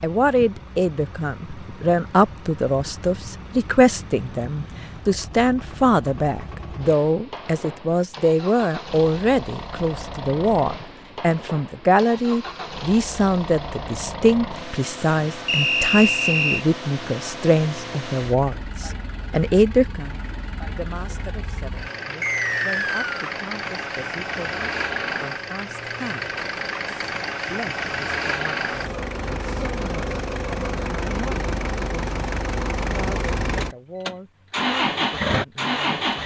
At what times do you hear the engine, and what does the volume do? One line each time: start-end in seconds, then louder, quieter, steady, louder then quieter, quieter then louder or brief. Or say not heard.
0.0-36.2 louder.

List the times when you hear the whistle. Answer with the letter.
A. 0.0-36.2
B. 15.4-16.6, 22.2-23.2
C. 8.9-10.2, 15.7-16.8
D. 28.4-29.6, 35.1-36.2
B.